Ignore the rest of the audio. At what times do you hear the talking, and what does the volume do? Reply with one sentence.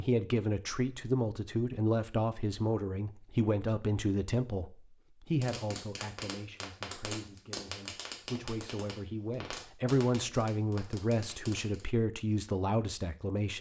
The talking can be heard from 0.0 to 13.5 s, getting quieter then louder.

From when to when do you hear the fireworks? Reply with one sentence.
The fireworks can be heard from 5.4 to 11.8 s.